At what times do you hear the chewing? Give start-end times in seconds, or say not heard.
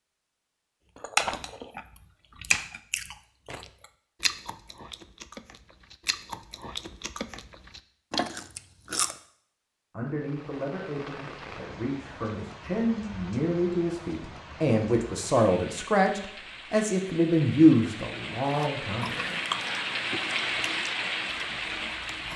0.9-9.2, 18.4-22.3.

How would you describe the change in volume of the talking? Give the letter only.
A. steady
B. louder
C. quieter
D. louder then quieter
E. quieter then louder
B.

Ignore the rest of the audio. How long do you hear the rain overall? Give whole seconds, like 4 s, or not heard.
12 s.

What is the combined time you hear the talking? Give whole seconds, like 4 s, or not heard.
9 s.